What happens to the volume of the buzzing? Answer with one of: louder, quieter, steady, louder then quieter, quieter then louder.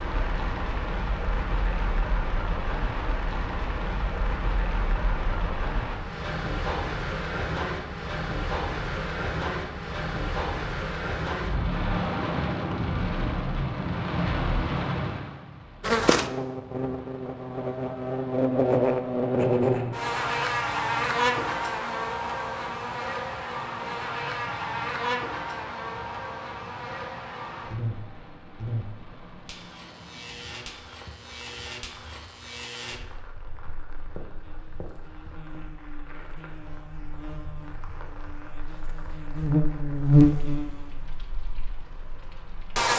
quieter then louder.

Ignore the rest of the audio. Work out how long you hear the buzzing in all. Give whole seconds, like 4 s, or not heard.
27 s.